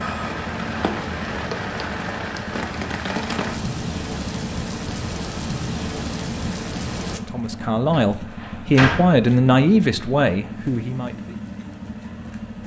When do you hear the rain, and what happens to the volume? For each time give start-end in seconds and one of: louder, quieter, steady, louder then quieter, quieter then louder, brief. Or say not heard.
0.0-7.2 steady.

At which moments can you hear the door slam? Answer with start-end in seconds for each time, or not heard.
7.9-9.1.